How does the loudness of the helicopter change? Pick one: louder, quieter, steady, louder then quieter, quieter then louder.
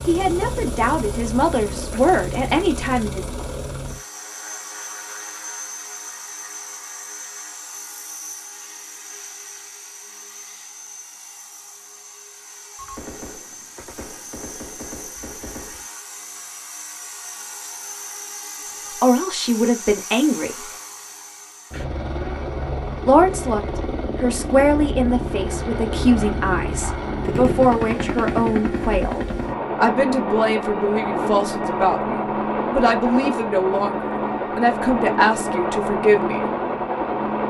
quieter then louder.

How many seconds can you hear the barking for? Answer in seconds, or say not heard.
not heard.